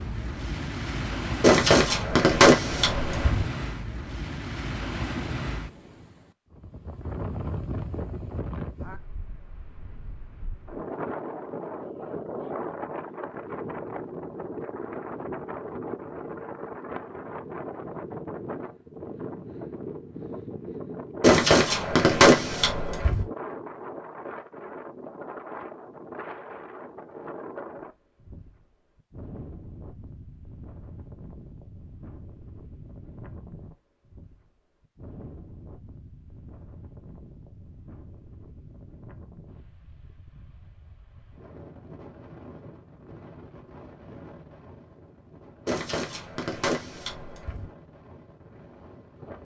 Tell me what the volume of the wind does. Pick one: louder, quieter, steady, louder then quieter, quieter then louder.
quieter.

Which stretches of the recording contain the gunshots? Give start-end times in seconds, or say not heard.
1.4-3.5, 21.2-23.2, 45.6-47.7.